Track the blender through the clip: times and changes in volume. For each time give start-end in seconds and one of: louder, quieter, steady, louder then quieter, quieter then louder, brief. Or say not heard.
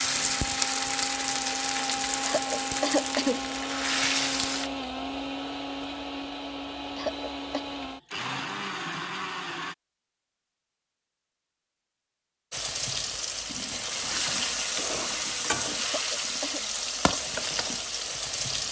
0.0-9.8 steady.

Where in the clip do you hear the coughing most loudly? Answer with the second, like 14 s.
3 s.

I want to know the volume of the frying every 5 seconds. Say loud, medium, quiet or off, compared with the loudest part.
loud, off, loud, loud.